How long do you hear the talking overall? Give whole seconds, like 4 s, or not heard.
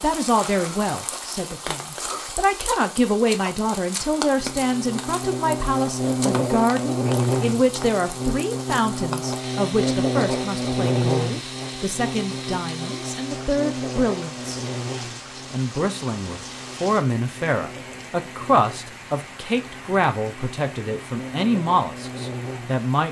22 s.